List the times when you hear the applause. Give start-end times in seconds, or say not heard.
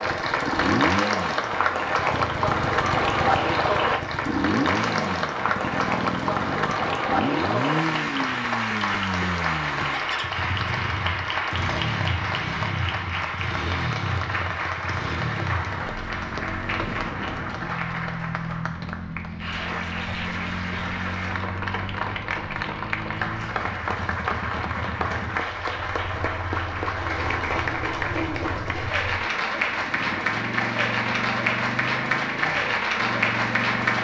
0.0-33.9.